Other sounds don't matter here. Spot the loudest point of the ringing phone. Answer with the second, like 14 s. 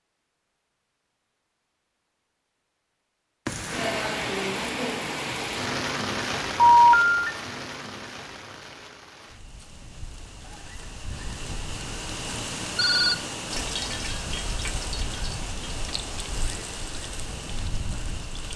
7 s.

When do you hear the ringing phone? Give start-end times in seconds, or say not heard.
6.5-7.3, 12.8-13.7.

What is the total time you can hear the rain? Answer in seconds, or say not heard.
15 s.